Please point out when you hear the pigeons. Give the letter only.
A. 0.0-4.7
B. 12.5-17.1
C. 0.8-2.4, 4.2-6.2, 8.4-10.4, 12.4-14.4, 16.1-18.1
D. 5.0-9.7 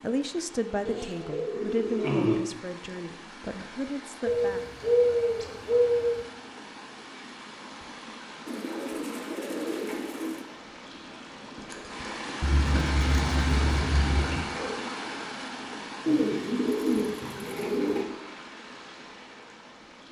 C.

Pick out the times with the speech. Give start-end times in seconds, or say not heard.
0.0-4.7.